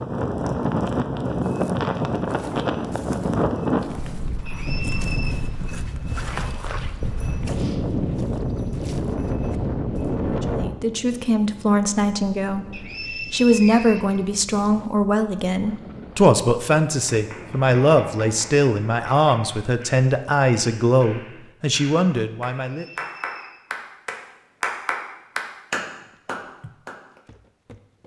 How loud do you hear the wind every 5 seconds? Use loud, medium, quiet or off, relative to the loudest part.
loud, loud, medium, quiet, off, off.